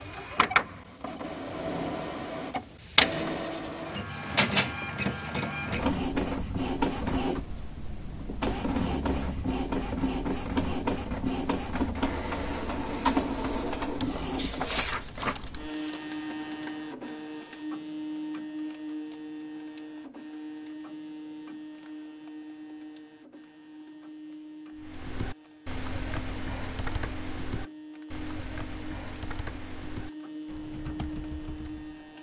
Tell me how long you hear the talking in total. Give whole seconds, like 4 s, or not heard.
not heard.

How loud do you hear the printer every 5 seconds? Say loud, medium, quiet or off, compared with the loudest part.
loud, loud, loud, medium, quiet, quiet, medium.